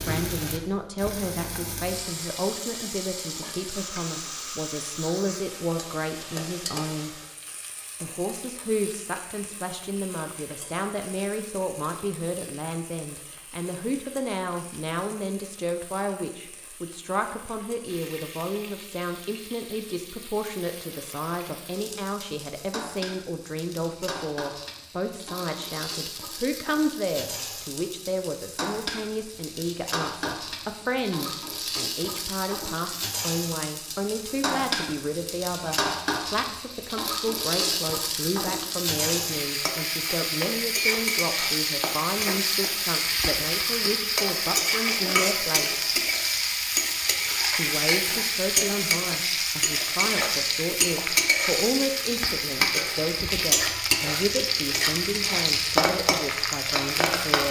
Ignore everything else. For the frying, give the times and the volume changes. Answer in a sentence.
You can hear the frying from 0.0 to 57.4 s, getting quieter then louder.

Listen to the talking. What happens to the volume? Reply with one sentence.
The volume of the talking stays about the same.